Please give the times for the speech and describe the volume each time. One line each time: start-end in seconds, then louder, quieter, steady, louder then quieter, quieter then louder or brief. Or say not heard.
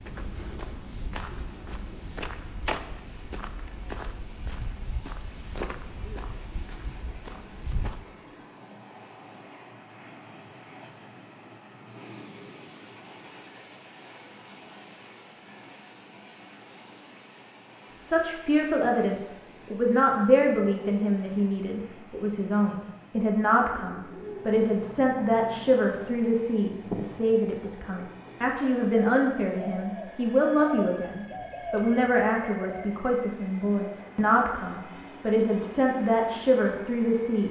17.9-37.4 steady.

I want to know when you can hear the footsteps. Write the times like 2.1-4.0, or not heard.
0.0-8.0.